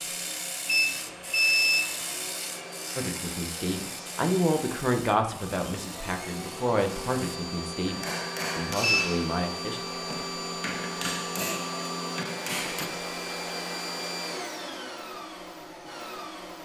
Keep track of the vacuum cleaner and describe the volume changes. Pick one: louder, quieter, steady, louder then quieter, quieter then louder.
louder.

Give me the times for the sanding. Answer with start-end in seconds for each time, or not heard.
0.0-7.4.